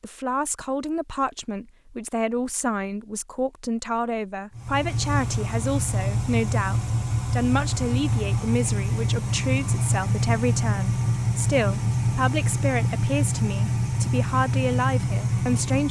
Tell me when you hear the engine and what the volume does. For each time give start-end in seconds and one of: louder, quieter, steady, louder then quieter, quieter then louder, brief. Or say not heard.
4.5-15.8 steady.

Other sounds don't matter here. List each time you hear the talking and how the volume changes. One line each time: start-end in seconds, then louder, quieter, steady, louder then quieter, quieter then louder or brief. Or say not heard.
0.0-15.8 steady.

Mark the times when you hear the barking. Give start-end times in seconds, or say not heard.
not heard.